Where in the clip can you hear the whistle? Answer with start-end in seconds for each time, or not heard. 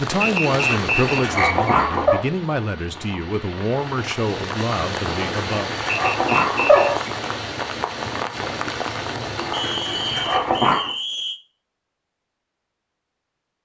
0.2-1.8, 6.1-7.0, 9.5-11.4.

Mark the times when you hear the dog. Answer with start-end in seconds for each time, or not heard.
0.5-2.2, 5.0-7.1, 9.3-10.9.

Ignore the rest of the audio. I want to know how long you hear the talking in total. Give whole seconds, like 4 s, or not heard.
6 s.